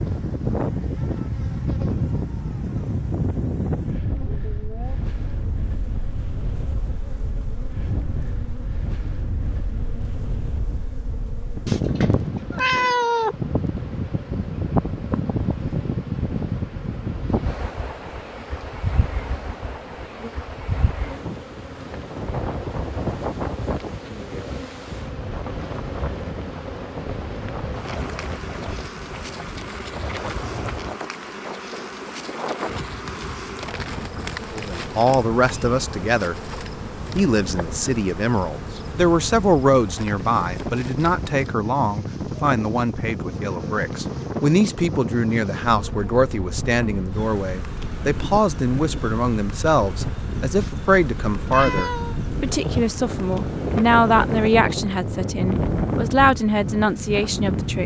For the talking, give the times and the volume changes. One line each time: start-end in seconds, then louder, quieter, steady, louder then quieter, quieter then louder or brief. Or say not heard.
34.5-36.4 brief
37.1-57.8 steady.